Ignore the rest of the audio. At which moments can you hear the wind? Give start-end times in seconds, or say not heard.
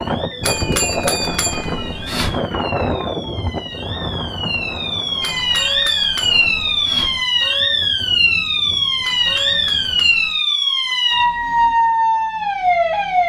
0.0-10.2.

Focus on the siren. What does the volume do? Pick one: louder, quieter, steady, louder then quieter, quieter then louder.
louder.